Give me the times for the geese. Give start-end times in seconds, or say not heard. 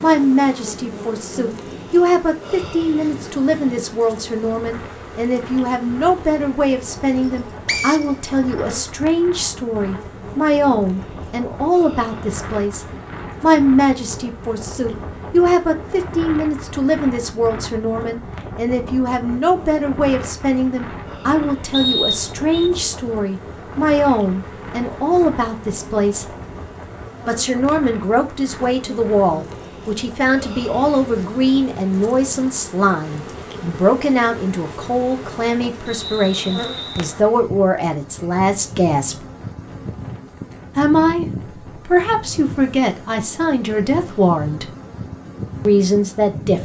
not heard.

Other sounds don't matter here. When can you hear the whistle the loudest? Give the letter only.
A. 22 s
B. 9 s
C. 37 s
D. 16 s
A.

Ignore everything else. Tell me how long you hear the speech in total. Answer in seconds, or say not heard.
43 s.